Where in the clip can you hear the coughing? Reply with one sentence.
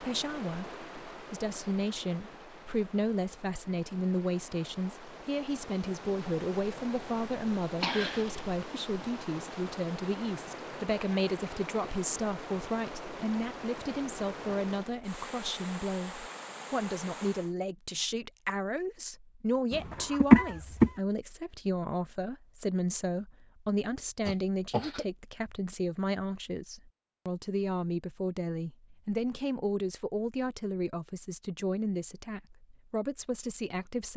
The coughing can be heard from 7.8 to 8.7 s, from 20.1 to 20.9 s and from 24.2 to 25.1 s.